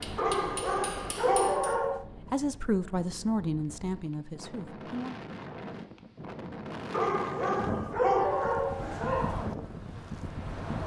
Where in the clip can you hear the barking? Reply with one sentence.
The barking can be heard from 0.1 to 2.0 s and from 6.9 to 9.3 s.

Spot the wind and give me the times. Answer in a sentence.
The wind can be heard from 0.0 to 10.8 s.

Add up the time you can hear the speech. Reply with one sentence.
The speech can be heard for 3 seconds in total.